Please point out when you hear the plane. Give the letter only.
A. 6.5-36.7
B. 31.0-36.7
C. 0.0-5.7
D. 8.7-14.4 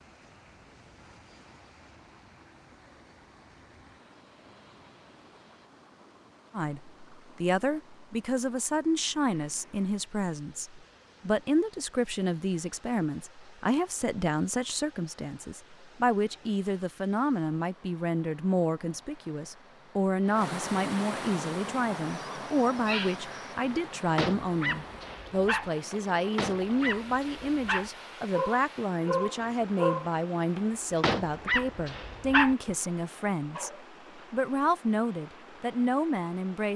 C.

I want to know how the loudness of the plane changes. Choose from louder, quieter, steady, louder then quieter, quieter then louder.
steady.